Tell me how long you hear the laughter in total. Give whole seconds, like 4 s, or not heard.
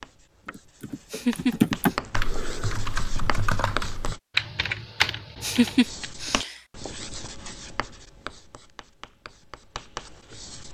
2 s.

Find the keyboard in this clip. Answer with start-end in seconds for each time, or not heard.
0.5-6.1.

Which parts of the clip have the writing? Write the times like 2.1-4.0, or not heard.
0.0-4.2, 5.8-10.6.